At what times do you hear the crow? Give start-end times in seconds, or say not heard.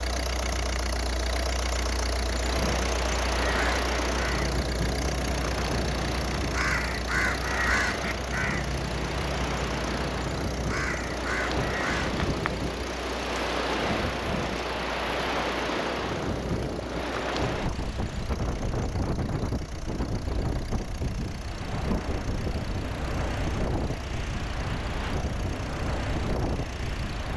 3.4-12.2.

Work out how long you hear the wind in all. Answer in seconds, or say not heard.
27 s.